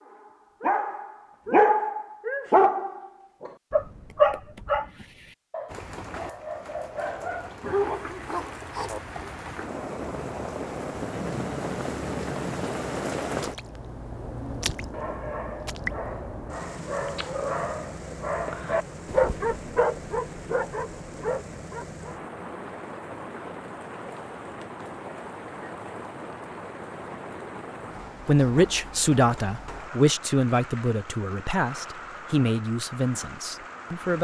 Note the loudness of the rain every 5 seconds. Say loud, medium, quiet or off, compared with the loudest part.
off, medium, loud, medium, medium, medium, medium.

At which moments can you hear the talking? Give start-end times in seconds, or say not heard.
28.2-34.2.